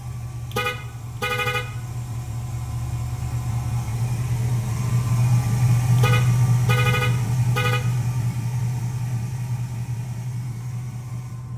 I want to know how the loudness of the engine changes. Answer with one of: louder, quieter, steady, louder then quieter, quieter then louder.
louder then quieter.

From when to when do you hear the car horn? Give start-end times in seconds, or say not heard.
0.5-1.6, 6.0-7.8.